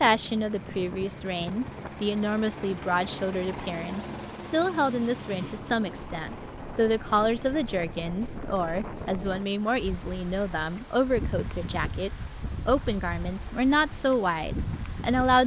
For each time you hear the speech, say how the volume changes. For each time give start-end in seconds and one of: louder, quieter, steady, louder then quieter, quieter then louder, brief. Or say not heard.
0.0-15.4 steady.